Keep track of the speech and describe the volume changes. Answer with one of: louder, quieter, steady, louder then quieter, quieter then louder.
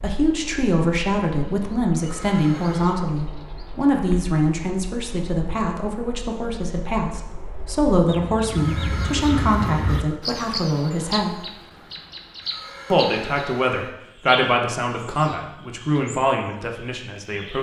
steady.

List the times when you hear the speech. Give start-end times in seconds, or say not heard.
0.0-11.4, 12.9-17.5.